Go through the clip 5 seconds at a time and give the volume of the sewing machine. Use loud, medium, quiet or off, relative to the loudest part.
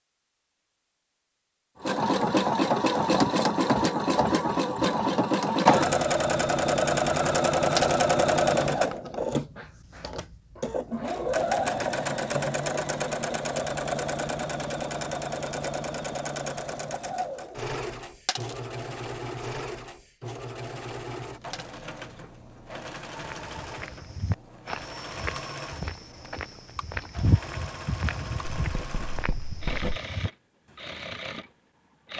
loud, loud, medium, medium, quiet, quiet, quiet.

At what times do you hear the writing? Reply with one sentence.
You can hear the writing from 28.6 to 30.0 s.